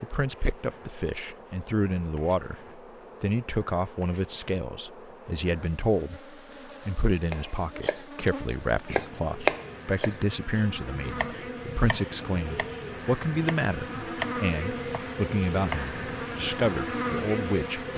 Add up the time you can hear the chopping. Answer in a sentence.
You can hear the chopping for 9 seconds altogether.